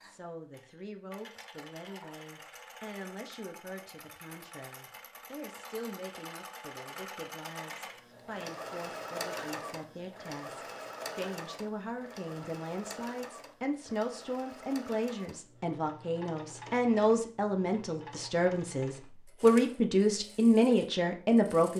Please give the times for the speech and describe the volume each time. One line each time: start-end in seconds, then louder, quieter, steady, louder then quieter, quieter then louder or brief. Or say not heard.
0.0-21.7 louder.